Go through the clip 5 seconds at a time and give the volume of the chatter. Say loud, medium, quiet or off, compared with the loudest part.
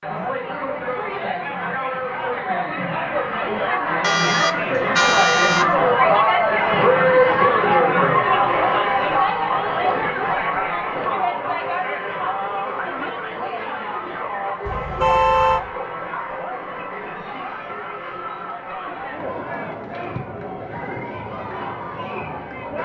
medium, loud, medium, quiet, quiet.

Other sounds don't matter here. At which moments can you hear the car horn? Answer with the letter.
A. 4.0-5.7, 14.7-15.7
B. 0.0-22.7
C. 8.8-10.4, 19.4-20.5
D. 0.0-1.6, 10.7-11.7
A.